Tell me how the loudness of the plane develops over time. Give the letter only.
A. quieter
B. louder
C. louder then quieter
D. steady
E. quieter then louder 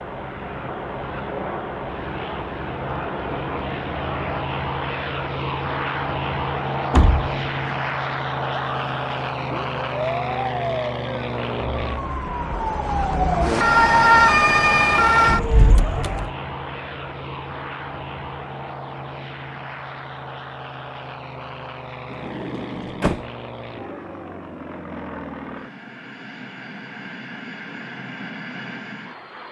A.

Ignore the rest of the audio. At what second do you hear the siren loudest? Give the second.
14 s.